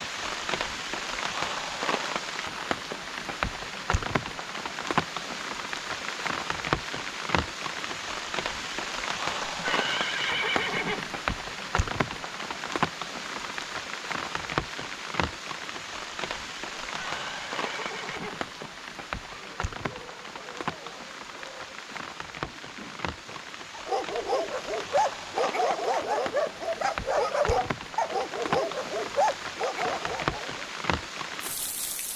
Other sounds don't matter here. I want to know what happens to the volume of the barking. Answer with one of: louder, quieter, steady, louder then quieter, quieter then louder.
louder.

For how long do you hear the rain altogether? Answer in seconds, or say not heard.
32 s.